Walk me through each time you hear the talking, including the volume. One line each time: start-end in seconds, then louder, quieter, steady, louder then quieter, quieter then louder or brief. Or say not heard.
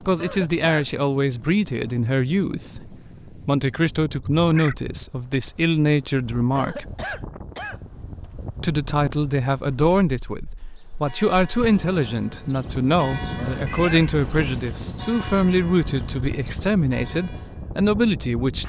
0.1-6.8 steady
8.6-18.6 steady.